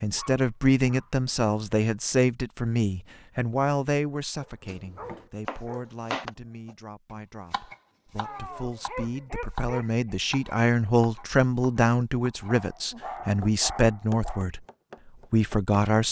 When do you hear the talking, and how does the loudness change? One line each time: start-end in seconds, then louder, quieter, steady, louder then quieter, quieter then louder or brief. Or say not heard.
0.0-14.6 quieter then louder
15.3-16.0 brief.